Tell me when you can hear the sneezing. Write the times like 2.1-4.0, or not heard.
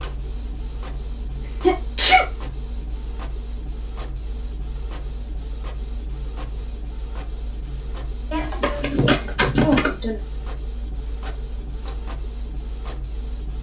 1.6-2.2, 8.3-10.2.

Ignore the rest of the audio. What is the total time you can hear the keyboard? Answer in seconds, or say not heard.
not heard.